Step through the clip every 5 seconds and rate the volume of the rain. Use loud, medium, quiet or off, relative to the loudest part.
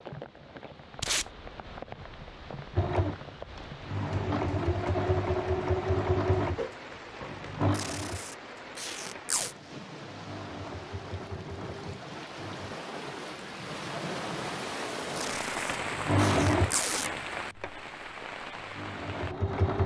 medium, medium, loud, loud.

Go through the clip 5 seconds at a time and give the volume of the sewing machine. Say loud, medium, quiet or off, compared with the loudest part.
loud, loud, quiet, loud.